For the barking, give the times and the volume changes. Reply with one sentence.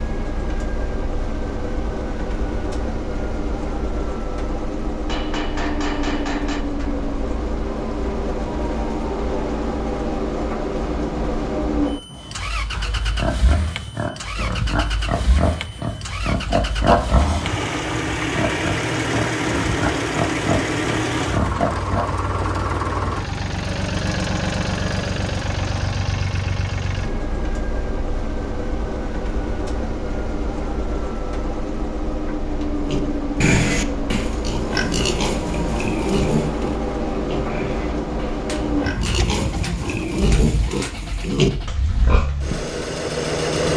You can't hear the barking here.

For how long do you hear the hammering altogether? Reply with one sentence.
The hammering can be heard for 4 seconds in total.